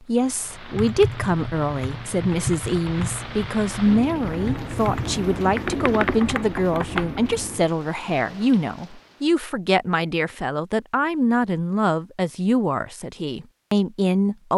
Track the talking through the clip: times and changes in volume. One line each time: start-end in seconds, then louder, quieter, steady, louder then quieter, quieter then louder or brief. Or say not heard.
0.1-14.5 steady.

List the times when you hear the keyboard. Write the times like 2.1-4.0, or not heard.
0.8-7.2.